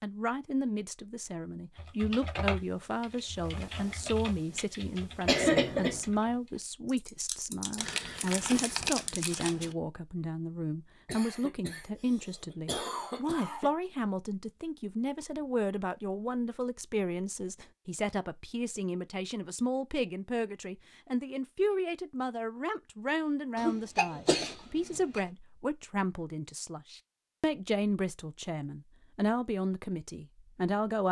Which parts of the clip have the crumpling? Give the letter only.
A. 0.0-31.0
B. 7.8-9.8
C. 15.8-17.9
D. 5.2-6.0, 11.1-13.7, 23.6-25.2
B.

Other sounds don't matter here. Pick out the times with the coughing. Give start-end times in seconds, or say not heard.
5.2-6.0, 11.1-13.7, 23.6-25.2.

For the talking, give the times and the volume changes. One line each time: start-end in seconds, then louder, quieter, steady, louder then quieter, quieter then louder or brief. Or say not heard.
0.0-31.0 steady.